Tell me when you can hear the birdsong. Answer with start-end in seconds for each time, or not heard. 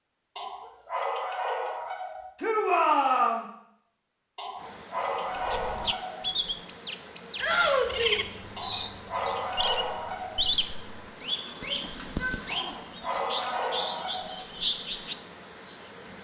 5.3-16.1.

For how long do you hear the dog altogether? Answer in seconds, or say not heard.
8 s.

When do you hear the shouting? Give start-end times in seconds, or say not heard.
2.4-3.5, 7.3-8.3, 11.4-13.6.